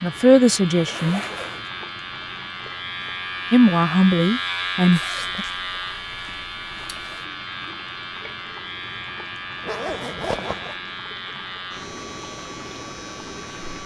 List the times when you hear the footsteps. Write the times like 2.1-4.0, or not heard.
not heard.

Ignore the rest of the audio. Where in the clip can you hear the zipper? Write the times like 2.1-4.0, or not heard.
0.7-1.7, 4.9-7.2, 9.6-10.8.